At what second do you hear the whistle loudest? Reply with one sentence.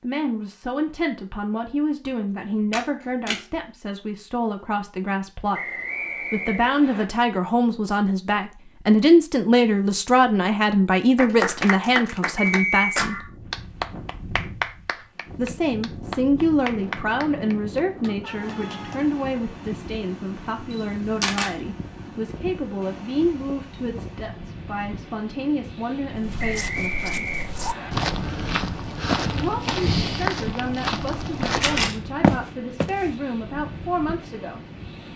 The loudest moment of the whistle is at 13 seconds.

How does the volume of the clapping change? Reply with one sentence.
The volume of the clapping goes down.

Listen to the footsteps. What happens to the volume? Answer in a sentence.
The volume of the footsteps goes up.